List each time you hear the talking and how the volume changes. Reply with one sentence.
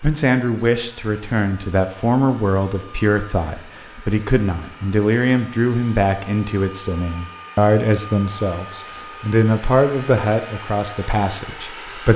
You can hear the talking from 0.0 to 12.1 s, at a steady volume.